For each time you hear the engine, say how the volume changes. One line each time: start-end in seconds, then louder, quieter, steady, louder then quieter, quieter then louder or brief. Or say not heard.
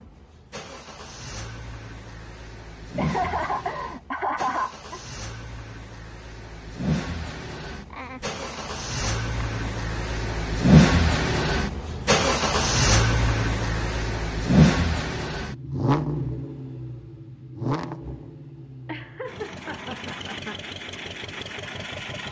0.0-22.2 louder then quieter.